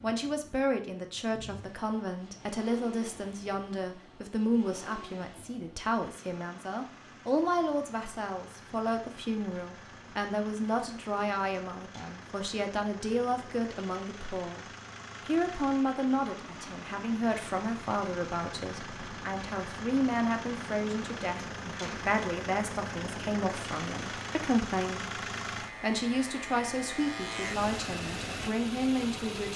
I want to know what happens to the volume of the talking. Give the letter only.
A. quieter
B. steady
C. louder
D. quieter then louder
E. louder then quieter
B.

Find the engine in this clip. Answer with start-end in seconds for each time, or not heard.
0.0-29.5.